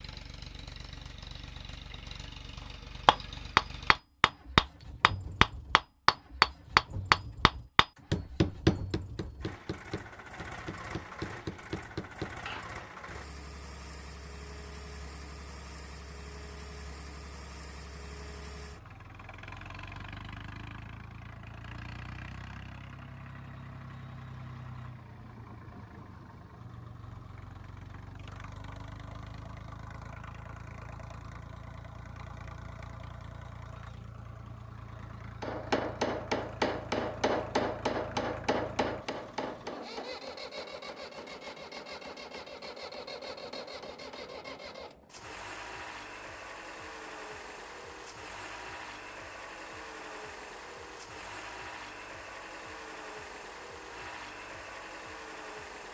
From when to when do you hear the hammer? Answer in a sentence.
The hammer can be heard from 3.0 to 12.8 s and from 35.4 to 44.4 s.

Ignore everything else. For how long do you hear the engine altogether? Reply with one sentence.
You can hear the engine for 56 seconds altogether.